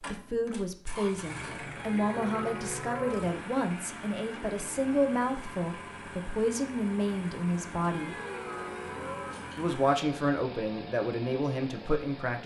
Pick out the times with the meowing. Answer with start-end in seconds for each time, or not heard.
1.8-3.3, 7.8-9.6.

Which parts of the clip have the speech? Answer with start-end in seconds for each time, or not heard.
0.1-8.2, 9.6-12.4.